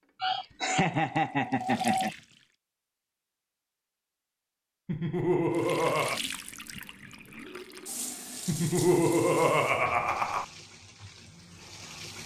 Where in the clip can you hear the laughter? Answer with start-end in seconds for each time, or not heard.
0.2-2.1, 4.8-6.2, 8.4-10.4.